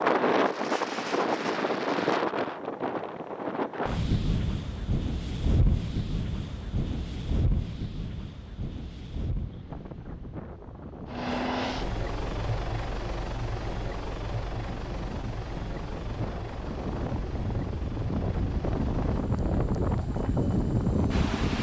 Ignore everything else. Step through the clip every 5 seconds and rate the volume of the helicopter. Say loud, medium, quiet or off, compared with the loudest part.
off, off, loud, medium, loud.